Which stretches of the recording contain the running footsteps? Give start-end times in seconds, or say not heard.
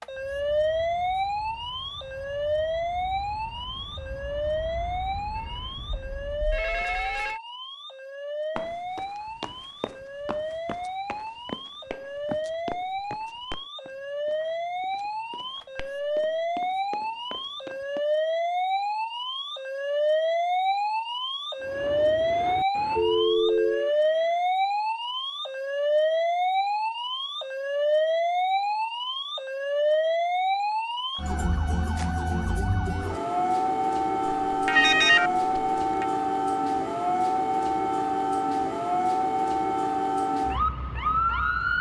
8.6-18.0.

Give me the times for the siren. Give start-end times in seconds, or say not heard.
0.0-41.7.